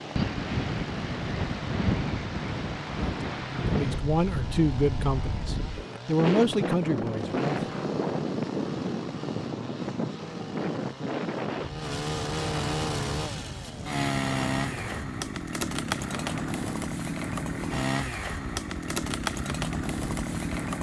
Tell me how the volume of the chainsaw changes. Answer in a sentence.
The loudness of the chainsaw goes up.